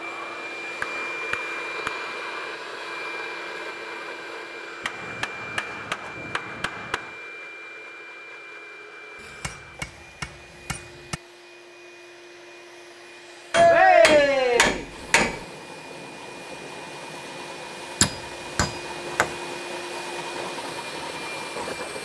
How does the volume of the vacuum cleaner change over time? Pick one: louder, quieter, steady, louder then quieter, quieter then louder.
quieter then louder.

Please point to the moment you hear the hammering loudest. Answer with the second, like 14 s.
14 s.